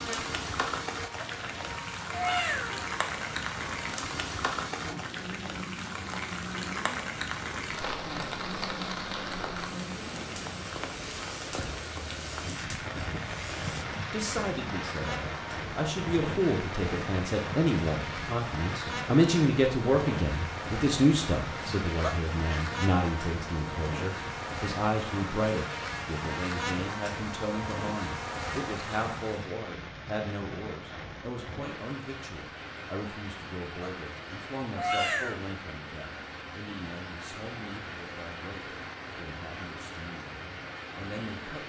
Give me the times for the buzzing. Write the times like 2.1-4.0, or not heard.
0.0-29.5.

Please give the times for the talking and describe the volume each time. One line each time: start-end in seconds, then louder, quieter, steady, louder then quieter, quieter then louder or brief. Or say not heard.
14.1-41.6 quieter.